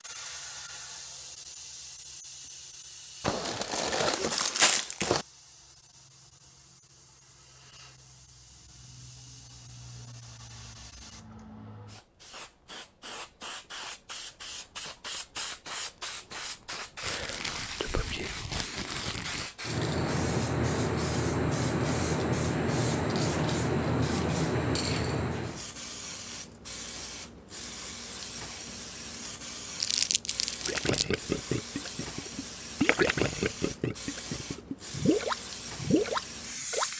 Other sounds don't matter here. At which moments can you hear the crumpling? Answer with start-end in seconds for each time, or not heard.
3.2-5.2, 17.0-19.5, 29.8-31.1.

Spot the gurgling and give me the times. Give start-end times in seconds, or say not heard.
30.6-36.9.